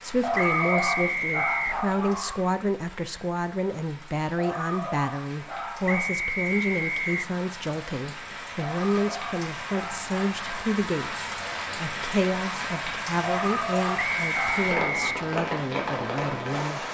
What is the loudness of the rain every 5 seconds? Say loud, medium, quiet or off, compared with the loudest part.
quiet, medium, loud, loud.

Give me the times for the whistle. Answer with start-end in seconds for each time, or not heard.
0.3-1.8, 5.8-7.3, 13.9-15.2.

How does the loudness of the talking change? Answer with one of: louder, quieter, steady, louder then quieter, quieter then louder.
steady.